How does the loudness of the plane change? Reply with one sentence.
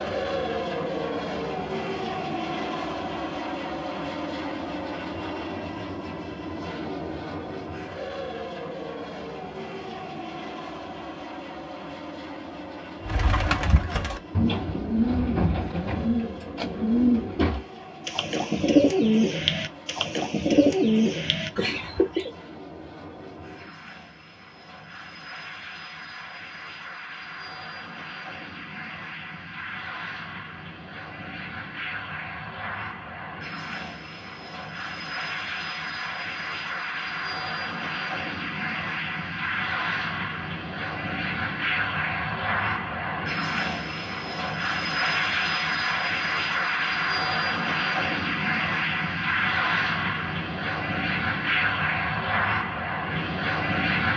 The loudness of the plane goes down, then up.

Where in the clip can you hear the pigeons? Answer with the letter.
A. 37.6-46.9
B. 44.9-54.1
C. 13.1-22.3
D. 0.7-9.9
C.